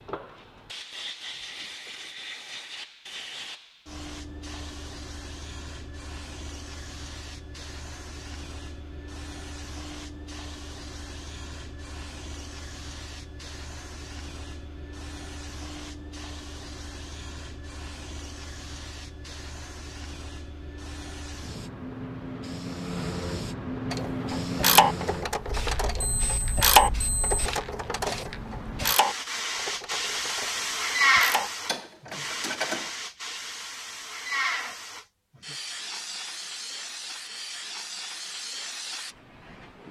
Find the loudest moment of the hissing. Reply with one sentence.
The loudest moment of the hissing is at 31 seconds.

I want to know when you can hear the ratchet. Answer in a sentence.
You can hear the ratchet from 23.9 to 32.9 s.